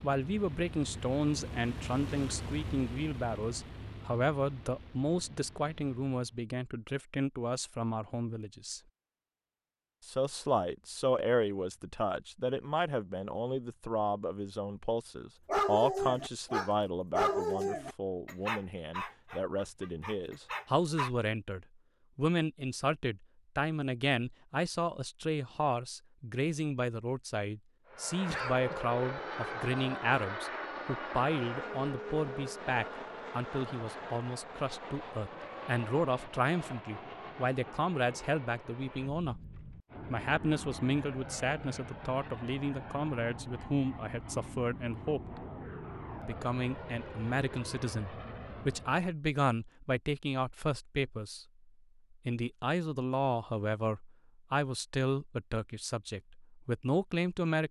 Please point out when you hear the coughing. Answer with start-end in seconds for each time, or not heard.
28.2-28.9.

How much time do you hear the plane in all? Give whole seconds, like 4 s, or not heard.
28 s.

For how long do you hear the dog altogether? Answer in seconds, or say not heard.
6 s.